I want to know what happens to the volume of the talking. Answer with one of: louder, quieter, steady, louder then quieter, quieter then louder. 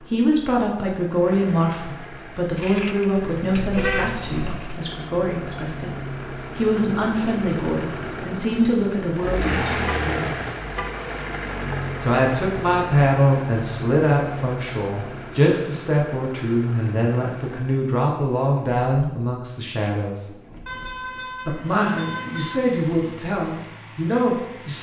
steady.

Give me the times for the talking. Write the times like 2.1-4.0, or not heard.
0.0-6.0, 6.5-10.4, 12.0-20.2, 21.4-24.7.